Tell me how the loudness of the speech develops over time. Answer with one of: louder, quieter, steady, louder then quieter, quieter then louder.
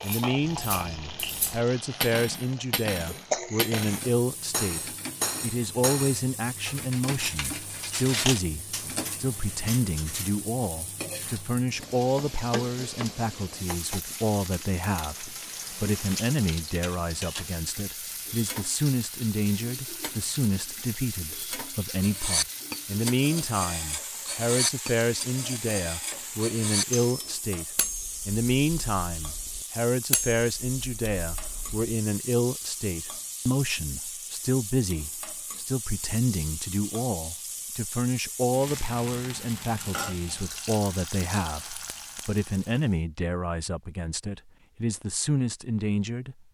steady.